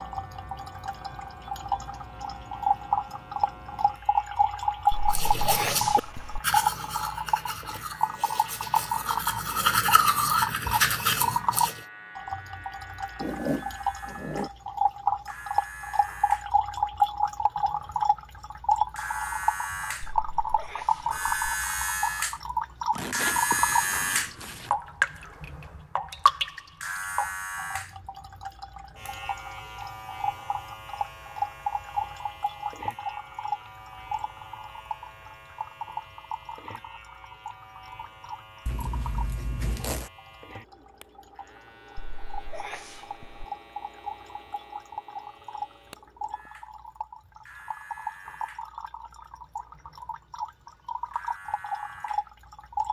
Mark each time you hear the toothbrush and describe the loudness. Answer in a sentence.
The toothbrush can be heard from 5.1 to 11.8 s, getting quieter then louder.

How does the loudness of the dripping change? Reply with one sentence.
The loudness of the dripping goes down.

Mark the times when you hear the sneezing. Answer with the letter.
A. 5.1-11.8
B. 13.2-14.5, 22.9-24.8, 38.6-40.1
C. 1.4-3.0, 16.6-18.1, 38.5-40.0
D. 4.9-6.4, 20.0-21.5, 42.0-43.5
D.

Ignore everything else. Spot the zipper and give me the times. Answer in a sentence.
The zipper can be heard from 13.2 to 14.5 s, from 22.9 to 24.8 s and from 38.6 to 40.1 s.